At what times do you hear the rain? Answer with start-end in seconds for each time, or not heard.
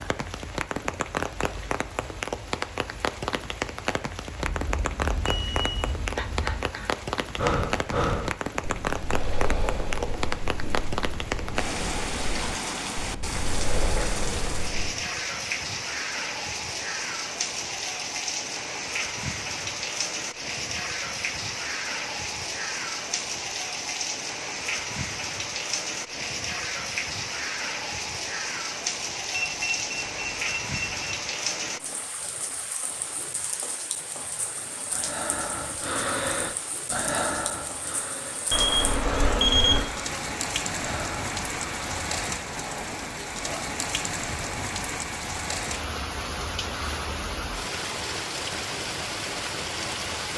0.0-50.3.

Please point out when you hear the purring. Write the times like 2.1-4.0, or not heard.
not heard.